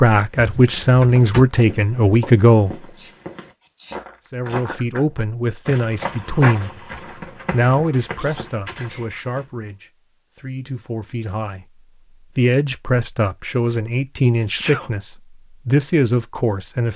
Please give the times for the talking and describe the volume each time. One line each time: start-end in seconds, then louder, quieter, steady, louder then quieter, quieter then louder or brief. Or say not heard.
0.0-2.8 brief
4.3-16.9 quieter then louder.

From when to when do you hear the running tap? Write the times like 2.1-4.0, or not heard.
not heard.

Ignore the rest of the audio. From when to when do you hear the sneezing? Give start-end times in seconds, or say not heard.
3.0-4.0, 8.0-9.2, 14.4-14.9.